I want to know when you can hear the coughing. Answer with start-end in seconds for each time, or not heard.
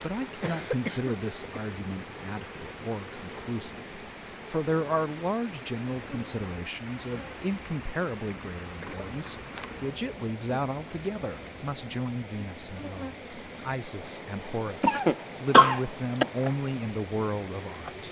0.2-1.6, 8.8-9.8, 14.8-16.2.